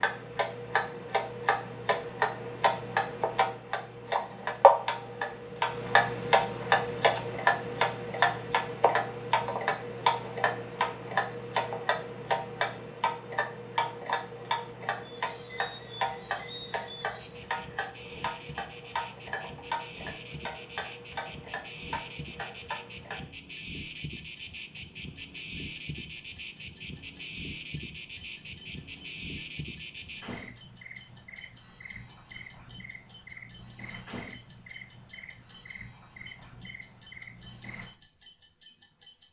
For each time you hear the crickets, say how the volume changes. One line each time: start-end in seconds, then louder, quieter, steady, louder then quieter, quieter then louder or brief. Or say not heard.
14.9-39.2 louder.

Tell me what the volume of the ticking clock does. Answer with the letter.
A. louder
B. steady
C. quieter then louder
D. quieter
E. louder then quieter
D.